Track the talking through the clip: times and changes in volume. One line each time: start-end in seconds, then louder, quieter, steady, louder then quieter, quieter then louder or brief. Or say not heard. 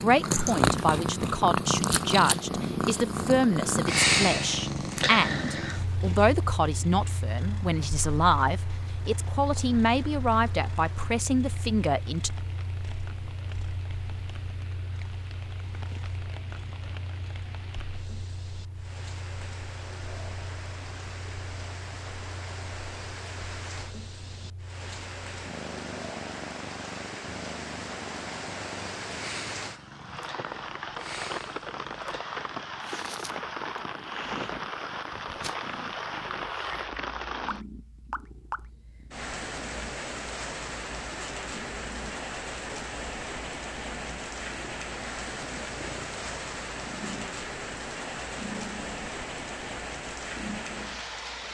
0.0-12.3 steady.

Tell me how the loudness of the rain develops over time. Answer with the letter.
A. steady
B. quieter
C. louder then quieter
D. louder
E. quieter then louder
D.